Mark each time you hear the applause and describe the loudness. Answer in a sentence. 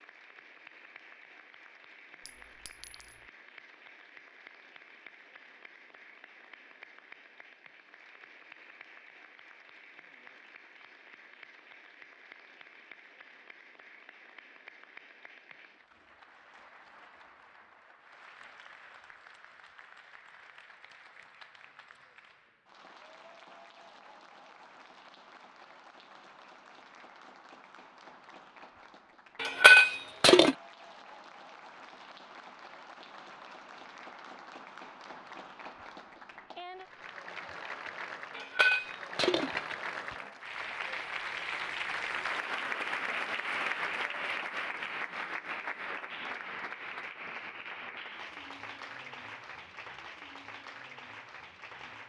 You can hear the applause from 0.0 to 52.0 s, getting louder.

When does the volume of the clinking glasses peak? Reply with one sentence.
The loudest moment of the clinking glasses is at 30 seconds.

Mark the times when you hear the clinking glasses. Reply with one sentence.
The clinking glasses can be heard from 2.2 to 3.1 s, from 29.4 to 30.6 s and from 38.4 to 40.1 s.